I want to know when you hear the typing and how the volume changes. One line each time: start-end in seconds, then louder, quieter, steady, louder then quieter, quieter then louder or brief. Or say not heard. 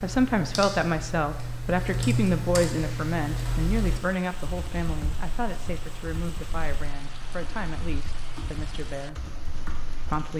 0.0-10.2 quieter.